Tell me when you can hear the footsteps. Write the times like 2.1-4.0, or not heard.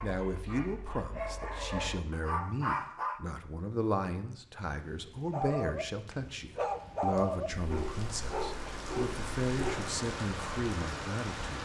not heard.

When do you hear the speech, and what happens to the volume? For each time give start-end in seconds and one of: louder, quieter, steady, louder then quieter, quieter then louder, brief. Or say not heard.
0.0-11.6 steady.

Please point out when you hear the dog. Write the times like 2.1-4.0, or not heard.
0.0-3.2, 5.3-9.9.